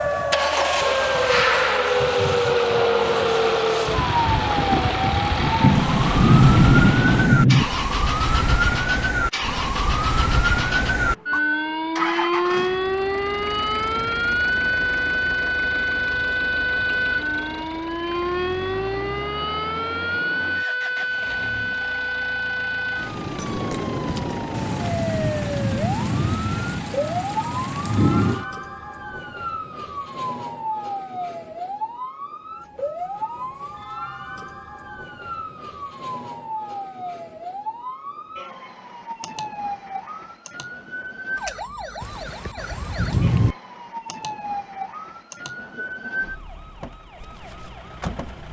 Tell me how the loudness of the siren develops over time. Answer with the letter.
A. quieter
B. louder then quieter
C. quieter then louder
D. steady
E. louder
A.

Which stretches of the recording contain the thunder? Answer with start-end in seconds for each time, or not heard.
5.6-7.7, 24.5-28.4, 42.0-43.5.